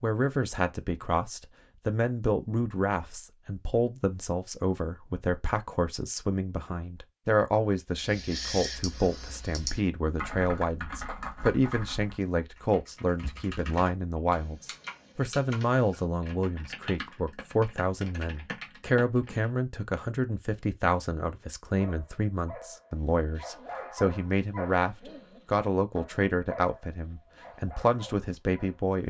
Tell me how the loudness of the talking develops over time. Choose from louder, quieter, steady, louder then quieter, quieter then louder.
steady.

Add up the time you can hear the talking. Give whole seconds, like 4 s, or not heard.
29 s.